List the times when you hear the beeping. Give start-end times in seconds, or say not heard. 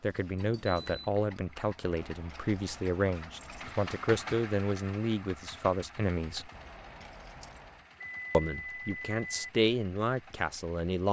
0.3-1.1, 8.0-9.5.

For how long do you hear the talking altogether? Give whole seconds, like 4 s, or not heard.
9 s.